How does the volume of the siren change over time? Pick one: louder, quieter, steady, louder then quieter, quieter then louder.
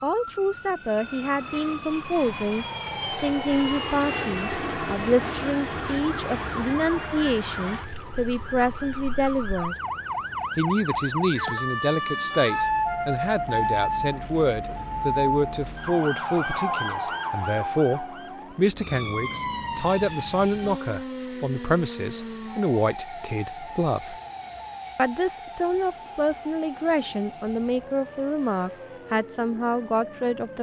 louder then quieter.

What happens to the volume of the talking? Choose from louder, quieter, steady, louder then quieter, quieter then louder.
steady.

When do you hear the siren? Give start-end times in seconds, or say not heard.
0.0-30.5.